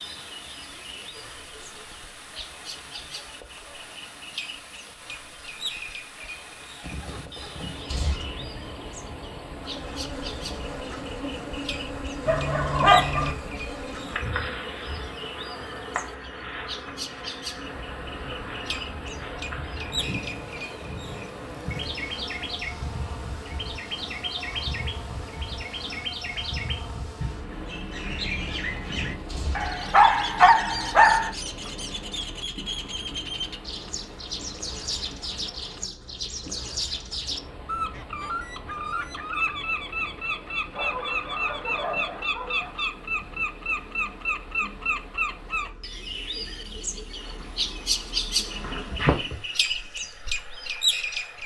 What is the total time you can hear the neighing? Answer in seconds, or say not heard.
3 s.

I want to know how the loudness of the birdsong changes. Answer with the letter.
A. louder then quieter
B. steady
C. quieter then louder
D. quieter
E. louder
E.